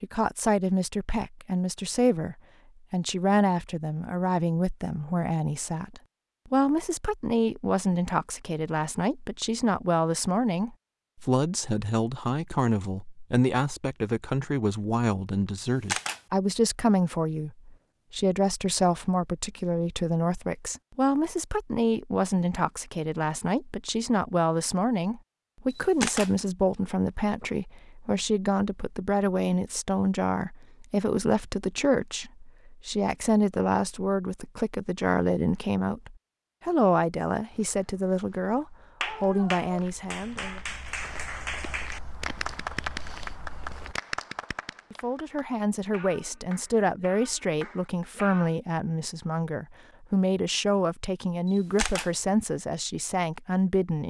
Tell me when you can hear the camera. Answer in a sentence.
You can hear the camera from 15.7 to 16.2 s, from 25.7 to 26.3 s and from 51.5 to 52.1 s.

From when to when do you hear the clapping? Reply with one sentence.
The clapping can be heard from 39.0 to 48.5 s.